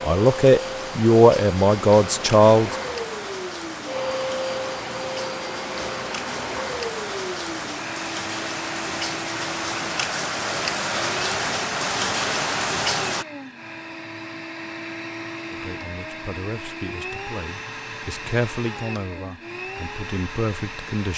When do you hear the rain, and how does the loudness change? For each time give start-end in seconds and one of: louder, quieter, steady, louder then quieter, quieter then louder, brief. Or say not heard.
0.0-13.2 louder.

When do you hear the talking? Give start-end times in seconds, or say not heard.
0.0-2.8, 15.5-21.1.